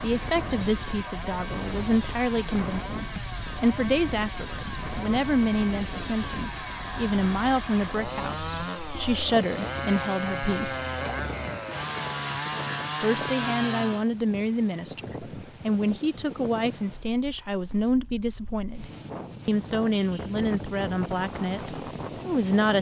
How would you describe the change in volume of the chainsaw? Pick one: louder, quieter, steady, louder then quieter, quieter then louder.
louder.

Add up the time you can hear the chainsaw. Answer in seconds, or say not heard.
14 s.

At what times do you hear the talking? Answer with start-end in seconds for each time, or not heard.
0.0-10.8, 13.0-22.7.